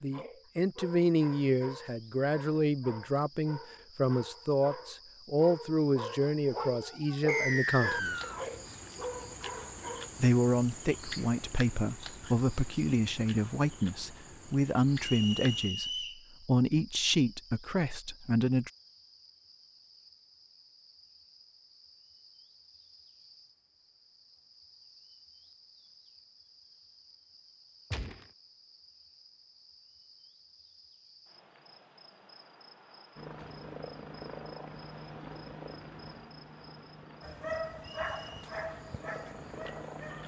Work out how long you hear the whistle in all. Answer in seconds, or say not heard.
3 s.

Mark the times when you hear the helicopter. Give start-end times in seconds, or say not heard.
33.1-40.2.